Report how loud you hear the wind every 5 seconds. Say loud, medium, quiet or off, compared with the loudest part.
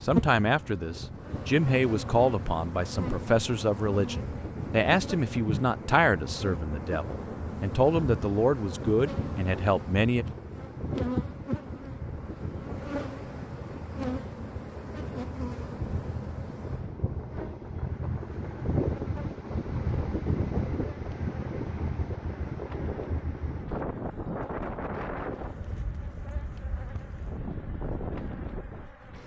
medium, medium, medium, loud, loud, medium.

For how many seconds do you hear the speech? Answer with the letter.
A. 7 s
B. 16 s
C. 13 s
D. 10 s
D.